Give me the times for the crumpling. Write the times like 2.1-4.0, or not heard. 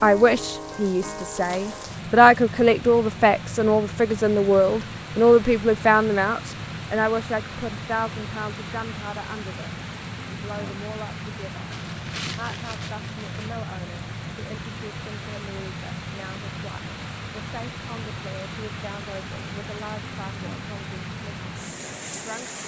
11.7-13.6.